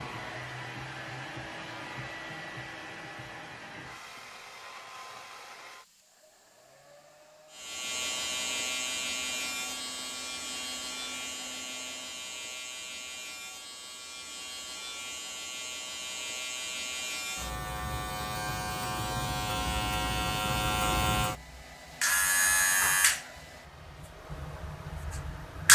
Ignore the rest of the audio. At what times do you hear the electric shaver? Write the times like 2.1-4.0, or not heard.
7.5-25.7.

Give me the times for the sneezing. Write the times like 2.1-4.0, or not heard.
not heard.